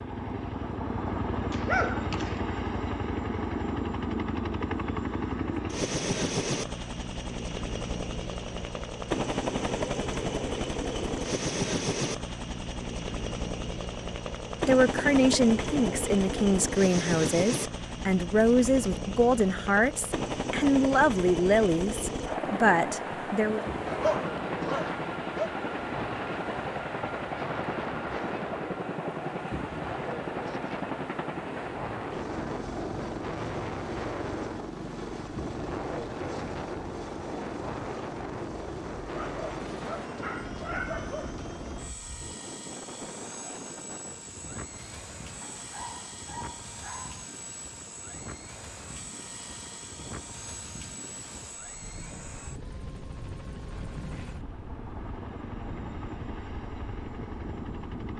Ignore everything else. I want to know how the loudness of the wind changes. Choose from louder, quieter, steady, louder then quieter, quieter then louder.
quieter.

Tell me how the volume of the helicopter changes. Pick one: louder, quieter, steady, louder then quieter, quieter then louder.
quieter.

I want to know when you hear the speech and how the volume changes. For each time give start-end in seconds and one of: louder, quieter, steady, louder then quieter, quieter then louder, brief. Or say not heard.
14.7-23.6 steady.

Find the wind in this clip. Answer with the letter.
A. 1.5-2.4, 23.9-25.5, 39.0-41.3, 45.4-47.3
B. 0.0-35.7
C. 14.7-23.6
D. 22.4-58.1
D.